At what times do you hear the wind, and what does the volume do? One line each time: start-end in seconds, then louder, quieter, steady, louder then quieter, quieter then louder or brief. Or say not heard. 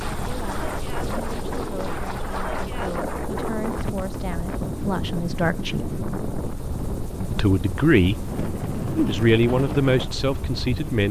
0.0-11.0 steady.